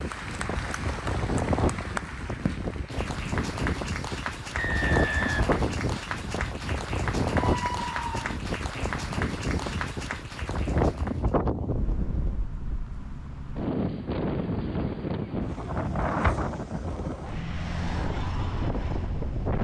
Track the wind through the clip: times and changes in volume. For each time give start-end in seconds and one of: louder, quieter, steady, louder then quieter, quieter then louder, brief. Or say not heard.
0.0-19.5 steady.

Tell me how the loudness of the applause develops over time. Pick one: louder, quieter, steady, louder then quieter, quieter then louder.
steady.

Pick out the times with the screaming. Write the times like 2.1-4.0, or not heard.
7.3-8.3.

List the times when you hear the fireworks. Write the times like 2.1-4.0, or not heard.
not heard.